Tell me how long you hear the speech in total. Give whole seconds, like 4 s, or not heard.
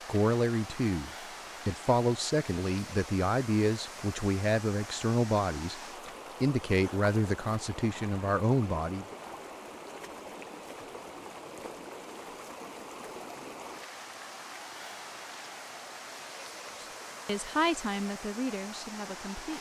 11 s.